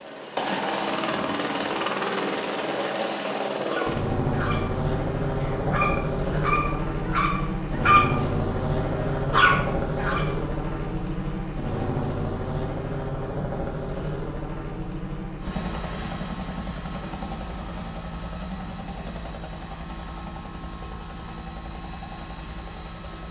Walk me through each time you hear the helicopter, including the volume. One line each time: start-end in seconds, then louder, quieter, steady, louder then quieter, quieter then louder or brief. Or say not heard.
0.0-23.2 quieter.